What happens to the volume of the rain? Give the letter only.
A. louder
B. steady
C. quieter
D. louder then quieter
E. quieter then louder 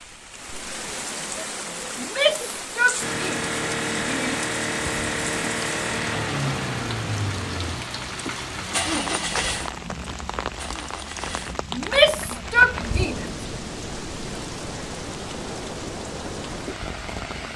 B.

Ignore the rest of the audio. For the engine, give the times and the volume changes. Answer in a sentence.
You can hear the engine from 3.0 to 13.1 s, getting quieter.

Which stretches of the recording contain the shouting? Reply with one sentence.
The shouting can be heard from 1.9 to 4.4 s and from 11.8 to 13.2 s.